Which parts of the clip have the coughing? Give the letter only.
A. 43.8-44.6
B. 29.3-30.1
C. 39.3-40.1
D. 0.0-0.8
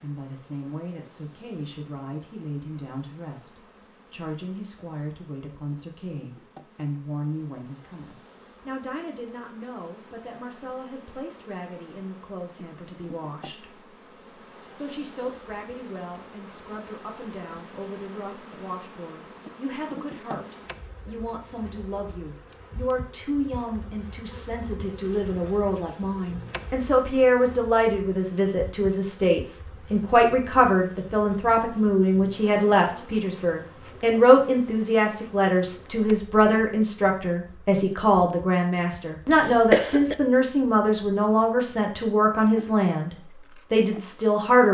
C.